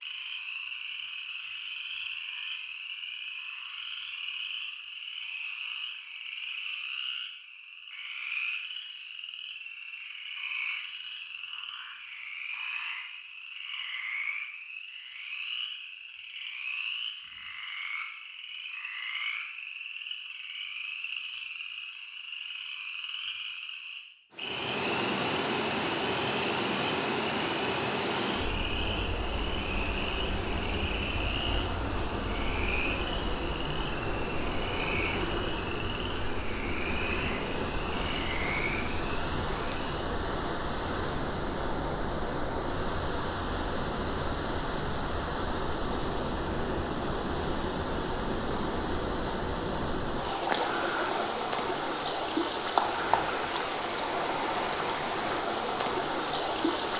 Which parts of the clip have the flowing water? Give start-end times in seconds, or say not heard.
24.3-56.9.